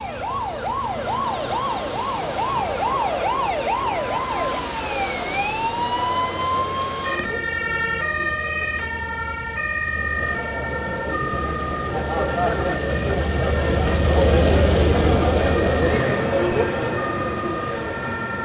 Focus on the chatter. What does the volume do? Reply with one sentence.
The volume of the chatter goes up.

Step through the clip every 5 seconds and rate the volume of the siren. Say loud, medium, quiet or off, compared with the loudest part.
loud, loud, medium, medium.